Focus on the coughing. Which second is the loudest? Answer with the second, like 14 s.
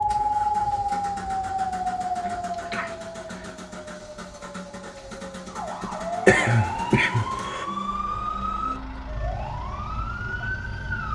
6 s.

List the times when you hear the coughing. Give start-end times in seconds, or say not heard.
2.2-3.5, 5.8-7.7.